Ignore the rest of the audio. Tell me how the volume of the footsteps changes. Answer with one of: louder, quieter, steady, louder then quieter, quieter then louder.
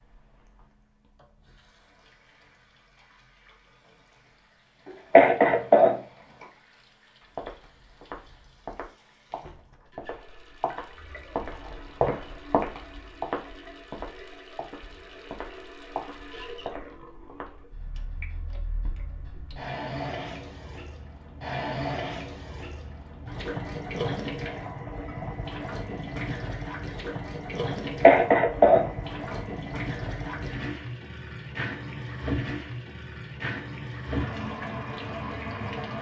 louder then quieter.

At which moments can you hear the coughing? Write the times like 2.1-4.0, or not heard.
4.8-6.0, 27.8-28.9.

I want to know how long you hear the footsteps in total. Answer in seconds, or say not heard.
10 s.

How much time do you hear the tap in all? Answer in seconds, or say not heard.
36 s.